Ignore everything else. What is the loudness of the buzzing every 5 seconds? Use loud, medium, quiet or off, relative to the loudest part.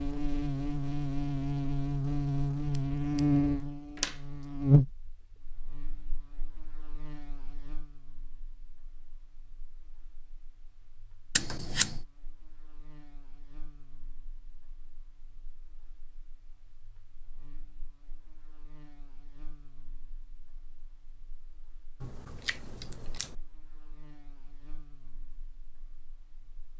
loud, quiet, quiet, quiet, quiet, quiet.